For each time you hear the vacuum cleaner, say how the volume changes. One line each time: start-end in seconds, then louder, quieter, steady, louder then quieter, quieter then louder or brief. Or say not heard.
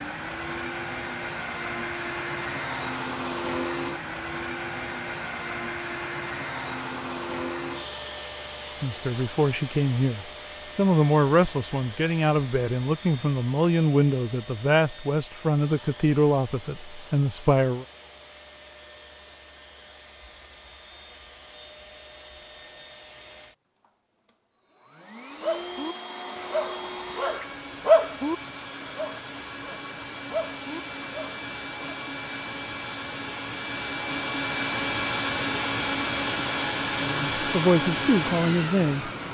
0.0-39.2 quieter then louder.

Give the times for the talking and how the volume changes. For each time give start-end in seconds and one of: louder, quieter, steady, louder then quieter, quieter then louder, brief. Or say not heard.
8.8-17.9 steady
37.0-39.1 brief.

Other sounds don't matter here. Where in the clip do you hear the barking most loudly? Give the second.
28 s.